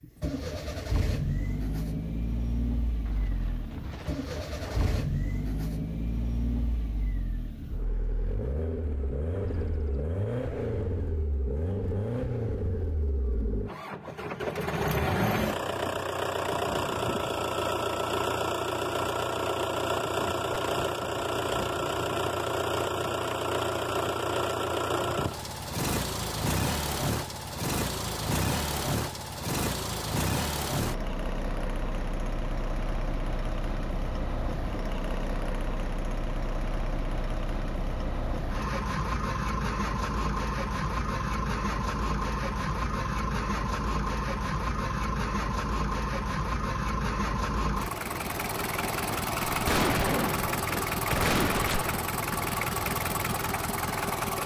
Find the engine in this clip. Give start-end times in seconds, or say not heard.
0.0-54.4.